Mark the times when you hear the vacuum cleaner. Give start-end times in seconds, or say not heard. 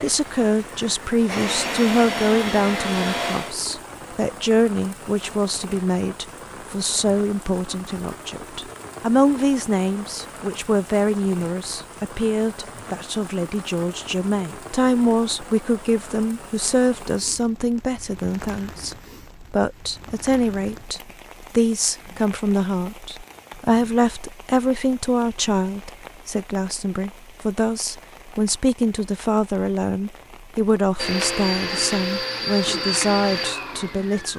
0.1-3.5, 30.9-34.3.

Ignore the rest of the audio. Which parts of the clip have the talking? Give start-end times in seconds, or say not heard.
0.0-34.3.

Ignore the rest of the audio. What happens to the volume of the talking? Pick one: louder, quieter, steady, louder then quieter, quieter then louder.
steady.